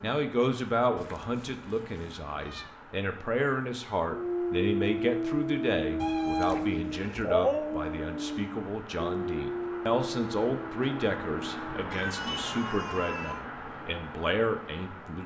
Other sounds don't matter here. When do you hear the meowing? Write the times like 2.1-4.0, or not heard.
0.9-2.8, 6.0-7.2, 11.9-13.4.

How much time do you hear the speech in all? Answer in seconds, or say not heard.
15 s.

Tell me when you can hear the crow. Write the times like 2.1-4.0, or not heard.
not heard.